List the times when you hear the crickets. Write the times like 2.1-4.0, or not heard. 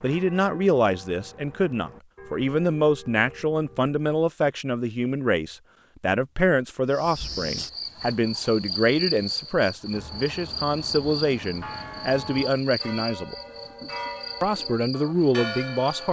6.9-16.0.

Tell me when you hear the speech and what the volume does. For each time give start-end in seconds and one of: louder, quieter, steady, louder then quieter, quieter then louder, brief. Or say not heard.
0.0-13.3 steady
14.4-16.0 brief.